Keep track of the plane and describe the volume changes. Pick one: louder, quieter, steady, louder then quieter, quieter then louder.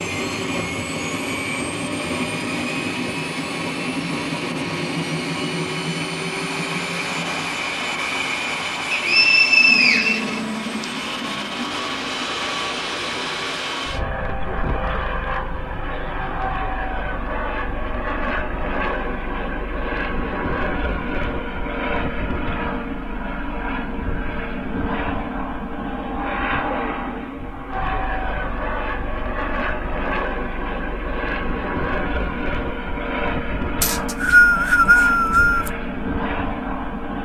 steady.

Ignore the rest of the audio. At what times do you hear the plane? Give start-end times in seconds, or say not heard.
0.0-37.2.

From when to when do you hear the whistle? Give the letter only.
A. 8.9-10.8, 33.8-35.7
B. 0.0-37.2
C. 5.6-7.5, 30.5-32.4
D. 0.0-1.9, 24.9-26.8
A.